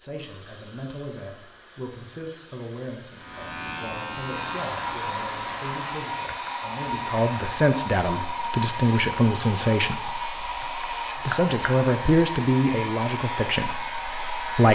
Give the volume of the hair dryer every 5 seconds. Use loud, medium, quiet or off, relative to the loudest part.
medium, loud, loud.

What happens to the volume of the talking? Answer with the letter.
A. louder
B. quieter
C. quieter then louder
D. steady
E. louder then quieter
A.